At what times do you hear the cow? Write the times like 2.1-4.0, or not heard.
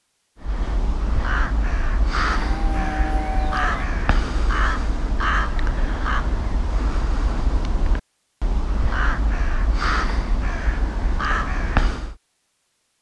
2.2-3.9.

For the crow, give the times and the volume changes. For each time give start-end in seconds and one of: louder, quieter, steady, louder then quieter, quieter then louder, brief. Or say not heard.
0.4-12.2 steady.